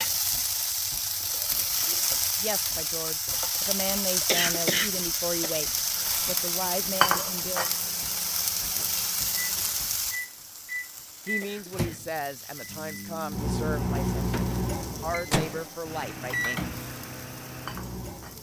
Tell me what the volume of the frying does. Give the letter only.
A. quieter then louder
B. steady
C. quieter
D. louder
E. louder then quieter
C.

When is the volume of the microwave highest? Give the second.
14 s.